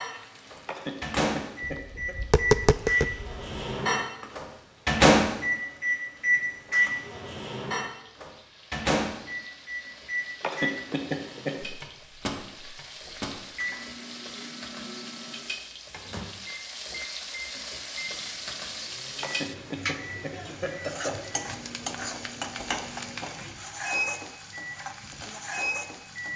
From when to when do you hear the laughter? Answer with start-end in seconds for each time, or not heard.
0.7-2.1, 10.4-11.6, 19.2-21.2.